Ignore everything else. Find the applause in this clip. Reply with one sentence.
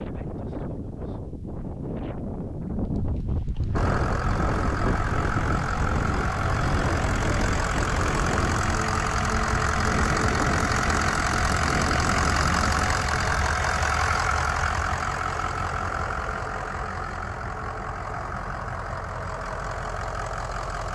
The applause can't be heard in this clip.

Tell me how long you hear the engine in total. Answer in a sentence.
The engine can be heard for 17 seconds in total.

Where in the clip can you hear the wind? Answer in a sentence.
The wind can be heard from 0.0 to 13.4 s.